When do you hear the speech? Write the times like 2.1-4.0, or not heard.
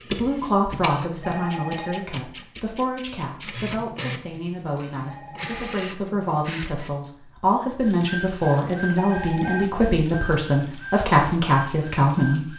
0.1-12.5.